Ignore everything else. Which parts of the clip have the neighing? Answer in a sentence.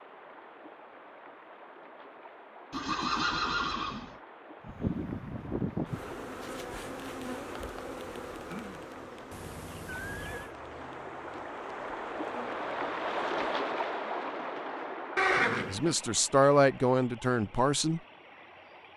You can hear the neighing from 2.7 to 4.2 s, from 9.3 to 10.6 s and from 15.2 to 15.9 s.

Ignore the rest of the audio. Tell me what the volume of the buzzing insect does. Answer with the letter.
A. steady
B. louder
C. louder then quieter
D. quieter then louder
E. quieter
E.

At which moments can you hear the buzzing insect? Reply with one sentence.
The buzzing insect can be heard from 4.6 to 13.4 s.